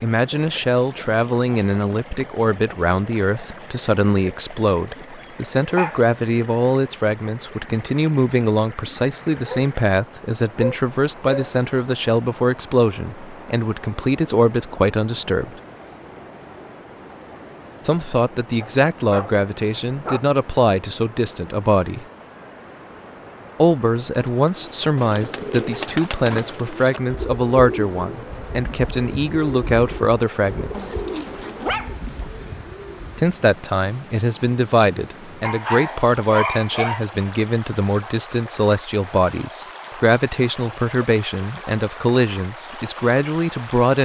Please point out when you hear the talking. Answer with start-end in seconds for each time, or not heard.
0.0-15.5, 17.9-22.1, 23.6-30.9, 33.1-43.9.